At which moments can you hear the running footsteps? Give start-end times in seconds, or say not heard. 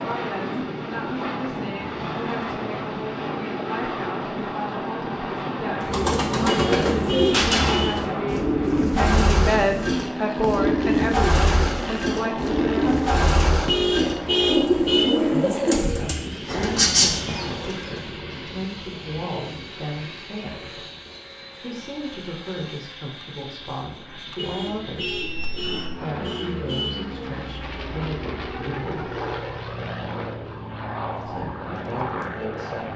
not heard.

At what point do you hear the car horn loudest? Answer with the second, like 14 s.
14 s.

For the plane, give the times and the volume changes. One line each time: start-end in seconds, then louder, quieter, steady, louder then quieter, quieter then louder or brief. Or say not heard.
0.0-32.9 quieter then louder.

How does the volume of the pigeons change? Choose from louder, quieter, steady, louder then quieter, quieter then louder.
steady.